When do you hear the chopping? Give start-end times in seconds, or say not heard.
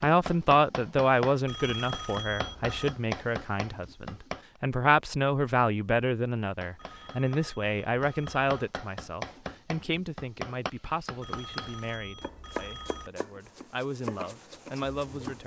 0.0-4.5, 6.4-15.4.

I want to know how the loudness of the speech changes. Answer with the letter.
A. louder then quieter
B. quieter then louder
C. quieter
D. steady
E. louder
C.